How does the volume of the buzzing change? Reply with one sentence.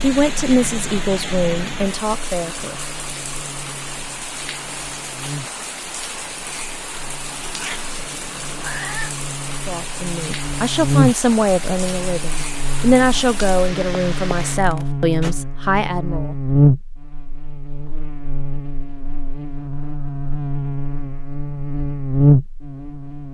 The volume of the buzzing goes up.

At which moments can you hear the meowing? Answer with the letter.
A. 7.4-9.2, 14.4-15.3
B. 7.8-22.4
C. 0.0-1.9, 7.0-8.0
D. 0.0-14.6
A.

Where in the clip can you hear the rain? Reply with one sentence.
You can hear the rain from 0.0 to 14.6 s.